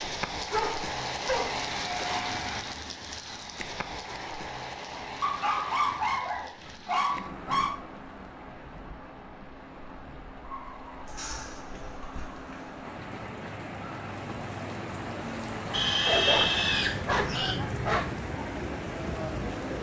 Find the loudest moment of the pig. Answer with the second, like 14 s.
16 s.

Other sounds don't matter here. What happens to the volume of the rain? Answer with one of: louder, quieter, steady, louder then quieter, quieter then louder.
quieter then louder.